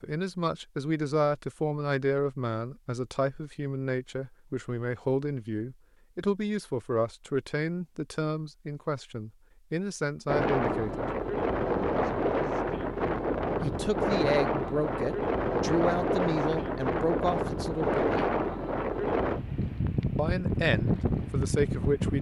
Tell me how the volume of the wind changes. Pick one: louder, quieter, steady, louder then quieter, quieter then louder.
steady.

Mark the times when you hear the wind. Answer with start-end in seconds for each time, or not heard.
10.2-22.1.